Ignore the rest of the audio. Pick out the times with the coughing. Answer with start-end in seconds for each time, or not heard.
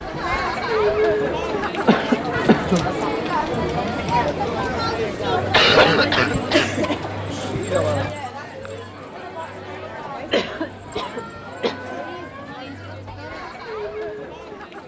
1.9-2.9, 5.5-6.7, 10.3-11.8.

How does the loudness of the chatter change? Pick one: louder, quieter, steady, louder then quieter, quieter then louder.
quieter.